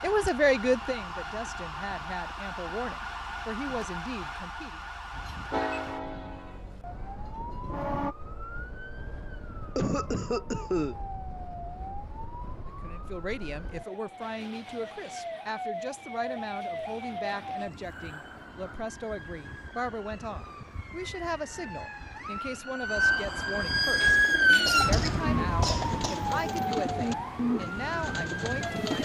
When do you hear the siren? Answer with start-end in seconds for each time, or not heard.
0.0-29.0.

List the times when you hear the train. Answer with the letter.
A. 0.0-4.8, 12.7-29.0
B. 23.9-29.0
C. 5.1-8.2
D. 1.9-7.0
C.